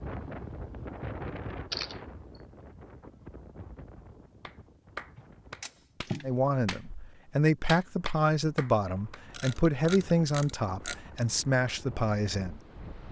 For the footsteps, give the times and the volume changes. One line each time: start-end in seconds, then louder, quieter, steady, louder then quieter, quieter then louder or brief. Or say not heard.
not heard.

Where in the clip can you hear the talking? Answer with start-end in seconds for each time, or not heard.
6.2-12.6.